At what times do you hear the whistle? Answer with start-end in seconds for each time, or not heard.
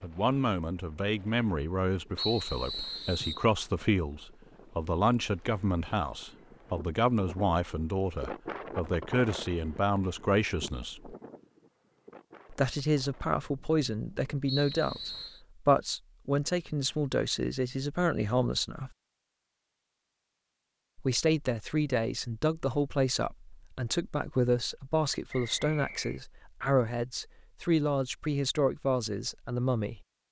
2.1-3.5, 14.4-15.4, 25.3-26.2.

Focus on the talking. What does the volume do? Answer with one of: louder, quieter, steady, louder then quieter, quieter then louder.
steady.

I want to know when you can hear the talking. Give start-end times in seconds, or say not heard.
0.0-11.2, 12.5-18.9, 20.9-30.0.